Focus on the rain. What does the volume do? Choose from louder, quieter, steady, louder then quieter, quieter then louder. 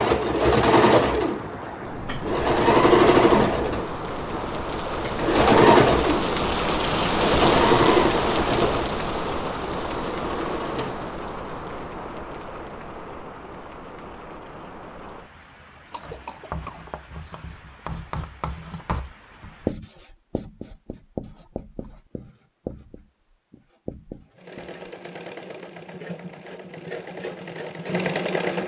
louder then quieter.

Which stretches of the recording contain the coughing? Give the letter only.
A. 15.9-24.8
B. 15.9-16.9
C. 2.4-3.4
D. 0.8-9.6
B.